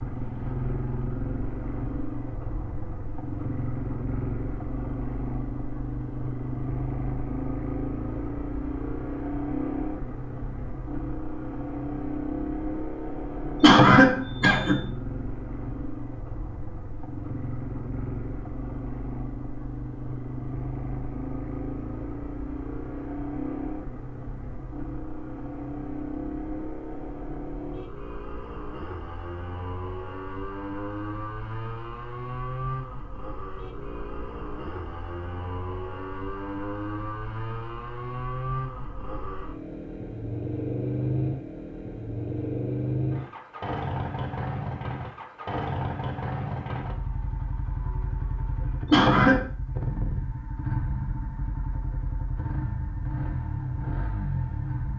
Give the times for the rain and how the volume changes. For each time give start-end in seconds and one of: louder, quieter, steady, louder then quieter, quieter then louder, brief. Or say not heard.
not heard.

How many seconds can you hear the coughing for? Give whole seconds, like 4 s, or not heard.
2 s.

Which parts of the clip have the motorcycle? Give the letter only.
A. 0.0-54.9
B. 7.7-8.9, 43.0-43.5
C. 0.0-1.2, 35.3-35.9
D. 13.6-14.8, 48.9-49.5
A.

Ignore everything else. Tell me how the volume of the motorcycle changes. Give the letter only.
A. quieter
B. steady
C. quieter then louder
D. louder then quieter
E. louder
B.